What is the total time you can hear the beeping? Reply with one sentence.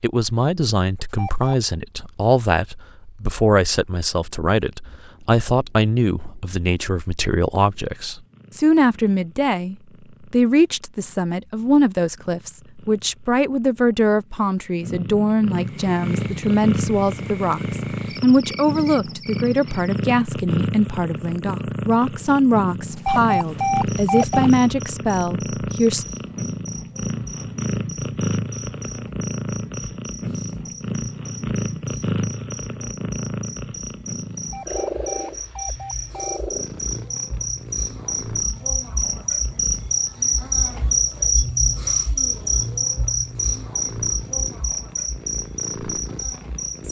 You can hear the beeping for 4 seconds altogether.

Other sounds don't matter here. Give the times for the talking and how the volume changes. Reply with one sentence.
You can hear the talking from 0.0 to 26.1 s, at a steady volume.